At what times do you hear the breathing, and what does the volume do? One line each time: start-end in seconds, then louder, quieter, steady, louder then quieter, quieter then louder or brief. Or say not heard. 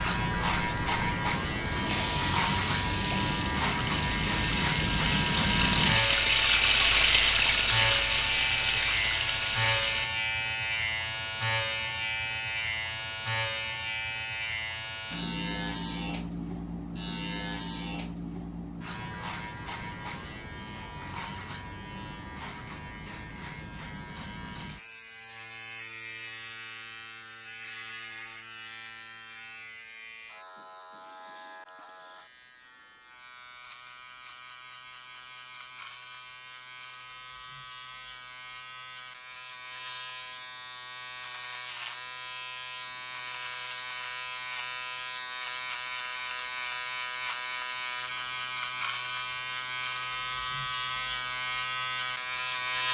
not heard.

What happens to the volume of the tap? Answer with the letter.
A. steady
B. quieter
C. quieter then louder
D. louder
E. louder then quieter
E.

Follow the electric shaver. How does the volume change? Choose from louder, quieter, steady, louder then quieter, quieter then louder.
quieter then louder.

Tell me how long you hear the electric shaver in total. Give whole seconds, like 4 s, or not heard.
53 s.